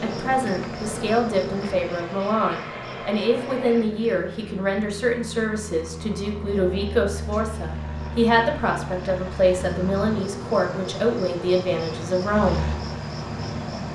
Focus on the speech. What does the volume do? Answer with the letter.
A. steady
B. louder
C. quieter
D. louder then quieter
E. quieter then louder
A.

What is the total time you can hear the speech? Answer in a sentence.
The speech can be heard for 13 seconds in total.